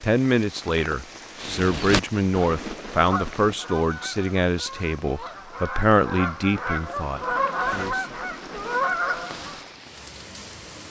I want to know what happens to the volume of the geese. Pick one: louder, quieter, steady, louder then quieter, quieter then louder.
quieter then louder.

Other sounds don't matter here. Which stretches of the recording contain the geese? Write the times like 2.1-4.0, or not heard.
1.4-9.7.